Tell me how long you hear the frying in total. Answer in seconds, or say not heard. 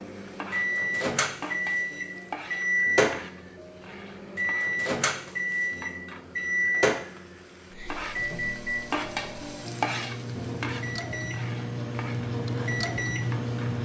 14 s.